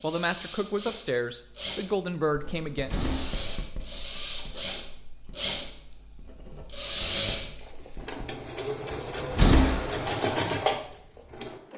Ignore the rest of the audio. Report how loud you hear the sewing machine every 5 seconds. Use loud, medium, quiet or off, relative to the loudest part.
medium, loud, loud.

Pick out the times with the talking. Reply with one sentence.
The talking can be heard from 0.0 to 2.9 s.